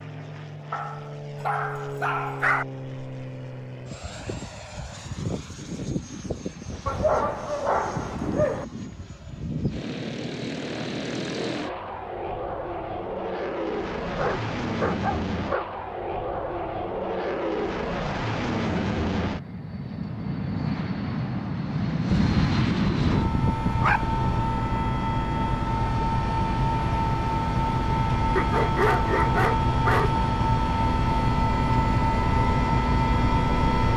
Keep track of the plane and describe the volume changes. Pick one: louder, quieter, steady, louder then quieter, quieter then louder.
louder.